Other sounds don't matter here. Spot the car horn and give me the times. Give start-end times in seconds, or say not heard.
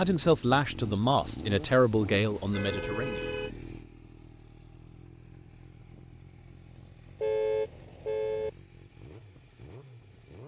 2.1-3.5, 7.2-8.5.